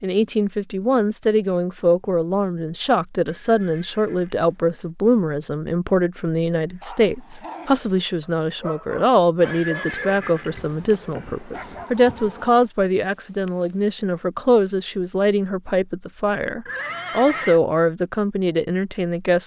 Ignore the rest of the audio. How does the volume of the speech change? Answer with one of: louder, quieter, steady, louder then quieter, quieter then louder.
steady.